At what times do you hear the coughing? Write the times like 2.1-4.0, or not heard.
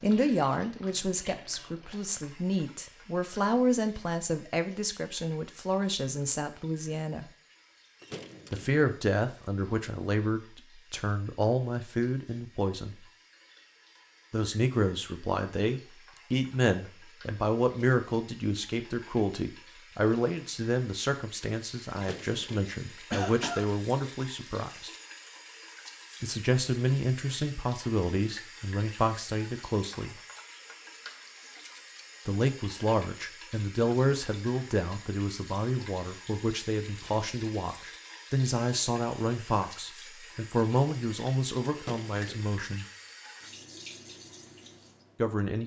23.1-23.6.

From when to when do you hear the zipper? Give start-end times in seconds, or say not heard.
not heard.